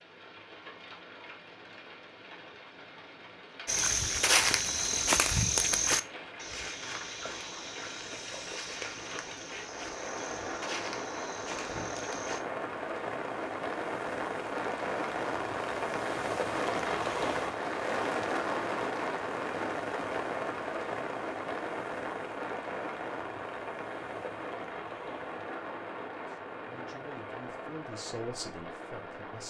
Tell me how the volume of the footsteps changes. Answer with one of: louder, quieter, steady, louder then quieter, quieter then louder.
quieter.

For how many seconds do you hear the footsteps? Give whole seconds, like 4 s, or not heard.
9 s.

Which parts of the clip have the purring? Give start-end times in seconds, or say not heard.
not heard.